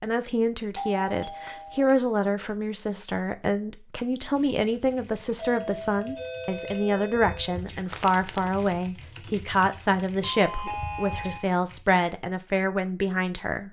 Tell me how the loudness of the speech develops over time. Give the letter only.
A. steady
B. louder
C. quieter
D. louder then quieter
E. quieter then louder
A.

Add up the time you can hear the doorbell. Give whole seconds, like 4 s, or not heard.
5 s.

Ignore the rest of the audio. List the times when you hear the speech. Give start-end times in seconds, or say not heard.
0.0-13.6.